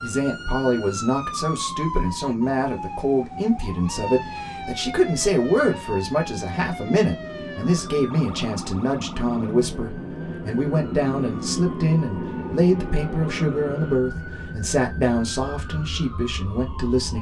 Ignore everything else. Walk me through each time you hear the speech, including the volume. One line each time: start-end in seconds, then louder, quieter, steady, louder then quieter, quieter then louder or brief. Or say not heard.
0.0-17.1 steady.